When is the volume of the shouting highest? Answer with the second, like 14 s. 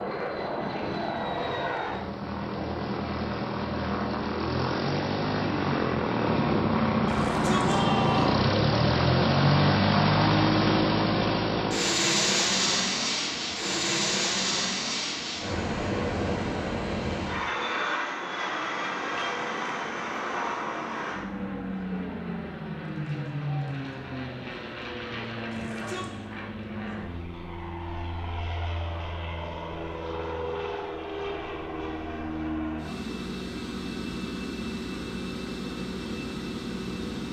8 s.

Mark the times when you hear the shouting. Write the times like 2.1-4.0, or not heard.
7.0-8.3, 25.5-26.1.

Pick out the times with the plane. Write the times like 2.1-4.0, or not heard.
0.0-37.2.